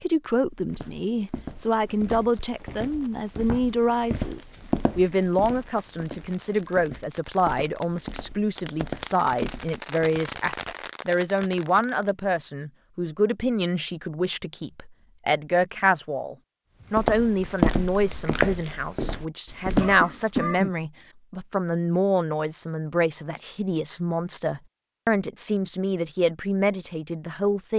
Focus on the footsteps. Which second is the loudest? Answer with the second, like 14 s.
18 s.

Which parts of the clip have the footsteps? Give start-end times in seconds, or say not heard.
0.7-10.2, 16.9-20.0.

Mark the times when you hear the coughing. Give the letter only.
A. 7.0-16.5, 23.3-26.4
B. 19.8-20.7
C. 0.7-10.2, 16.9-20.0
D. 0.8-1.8
B.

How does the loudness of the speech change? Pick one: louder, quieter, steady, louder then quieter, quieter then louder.
steady.